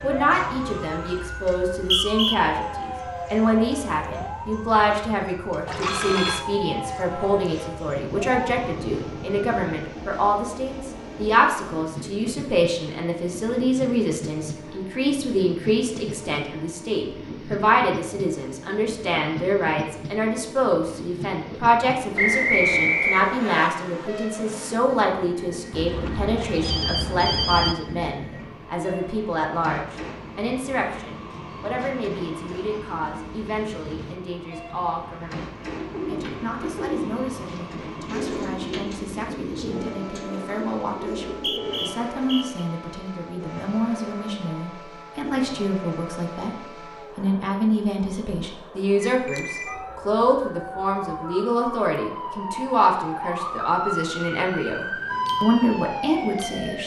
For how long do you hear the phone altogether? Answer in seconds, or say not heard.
4 s.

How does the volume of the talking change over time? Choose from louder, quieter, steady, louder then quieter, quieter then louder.
quieter then louder.